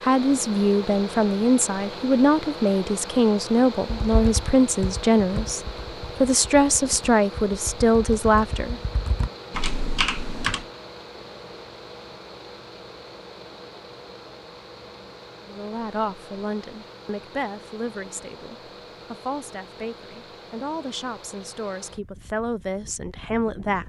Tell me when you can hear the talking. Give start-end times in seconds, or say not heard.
0.0-8.8, 15.4-23.8.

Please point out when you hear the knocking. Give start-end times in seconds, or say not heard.
not heard.